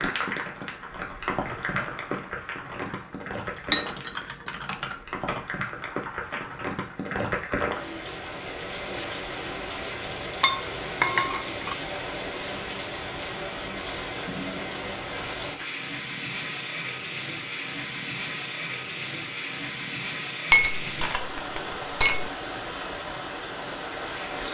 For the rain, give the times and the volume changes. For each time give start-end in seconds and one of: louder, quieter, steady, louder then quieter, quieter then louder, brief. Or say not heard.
0.0-24.4 steady.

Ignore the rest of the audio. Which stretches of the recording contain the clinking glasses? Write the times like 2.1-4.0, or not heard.
3.7-5.0, 10.4-11.8, 20.5-22.3.